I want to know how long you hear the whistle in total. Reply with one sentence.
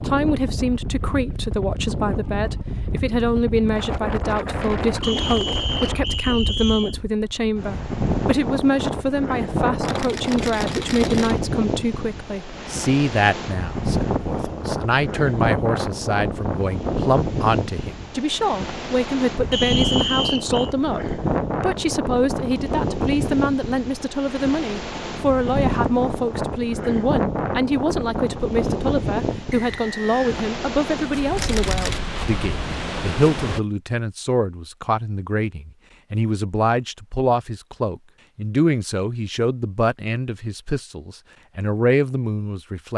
The whistle can be heard for 4 seconds in total.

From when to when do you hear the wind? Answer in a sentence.
The wind can be heard from 0.0 to 33.6 s.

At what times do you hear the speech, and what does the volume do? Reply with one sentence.
The speech can be heard from 0.1 to 42.9 s, at a steady volume.